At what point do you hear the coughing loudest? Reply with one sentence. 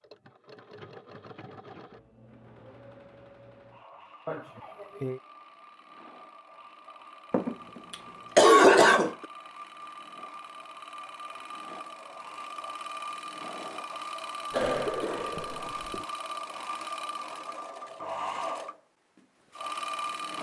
The loudest moment of the coughing is at 9 seconds.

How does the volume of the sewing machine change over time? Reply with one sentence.
The volume of the sewing machine goes up.